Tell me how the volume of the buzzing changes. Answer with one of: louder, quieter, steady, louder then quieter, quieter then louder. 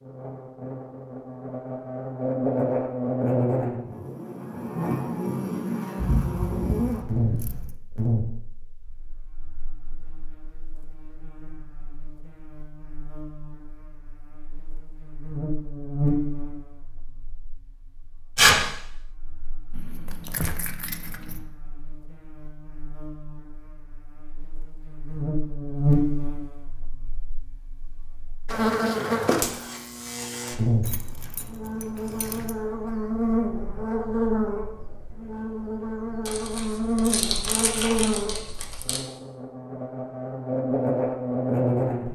quieter then louder.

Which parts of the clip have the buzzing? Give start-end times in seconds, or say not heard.
0.0-42.1.